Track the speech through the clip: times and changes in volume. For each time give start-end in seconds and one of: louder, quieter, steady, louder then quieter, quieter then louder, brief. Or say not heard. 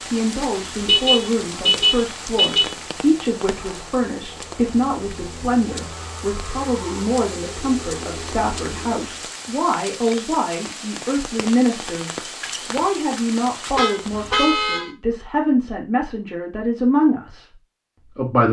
0.1-18.4 steady.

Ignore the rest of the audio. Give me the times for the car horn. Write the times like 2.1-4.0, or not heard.
0.8-2.8, 13.7-14.9.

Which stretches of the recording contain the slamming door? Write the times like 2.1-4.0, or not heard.
not heard.